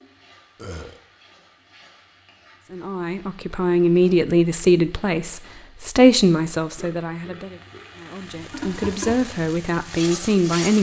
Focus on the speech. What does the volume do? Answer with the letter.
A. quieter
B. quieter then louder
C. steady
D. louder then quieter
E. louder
B.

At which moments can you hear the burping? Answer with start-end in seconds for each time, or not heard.
0.6-1.0, 6.7-8.0.